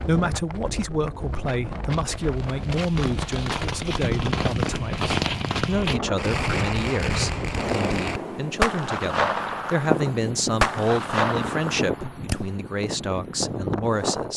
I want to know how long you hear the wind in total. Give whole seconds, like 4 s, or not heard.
14 s.